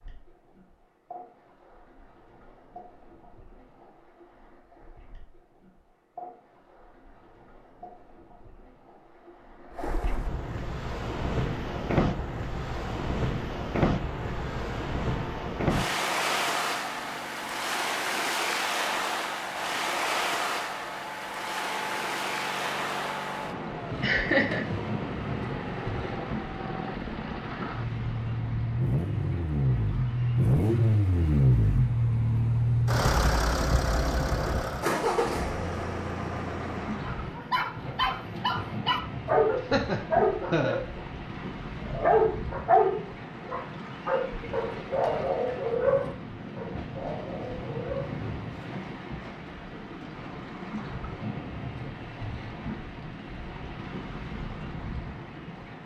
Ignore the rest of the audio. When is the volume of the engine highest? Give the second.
31 s.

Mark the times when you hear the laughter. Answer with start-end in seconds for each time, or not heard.
24.0-24.6, 39.5-40.8.